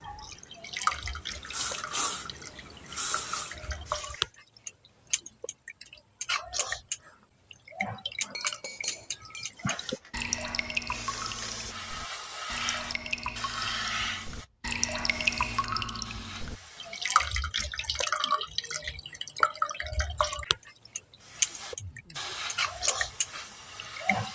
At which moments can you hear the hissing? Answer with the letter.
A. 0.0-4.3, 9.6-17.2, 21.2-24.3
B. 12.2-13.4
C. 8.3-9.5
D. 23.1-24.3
A.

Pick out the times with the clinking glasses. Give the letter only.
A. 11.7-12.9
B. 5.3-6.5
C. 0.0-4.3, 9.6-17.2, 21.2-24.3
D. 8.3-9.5
D.